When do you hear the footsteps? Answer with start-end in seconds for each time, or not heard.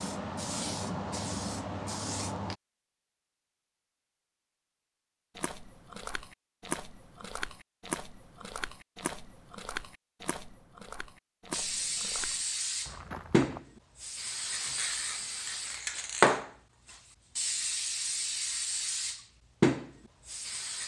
5.3-13.6.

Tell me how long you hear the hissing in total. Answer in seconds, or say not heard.
12 s.